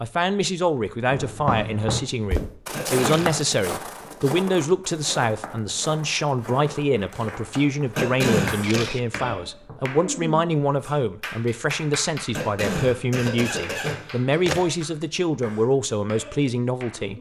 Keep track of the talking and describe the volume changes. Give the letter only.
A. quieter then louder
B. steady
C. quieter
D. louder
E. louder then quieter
B.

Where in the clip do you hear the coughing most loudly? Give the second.
8 s.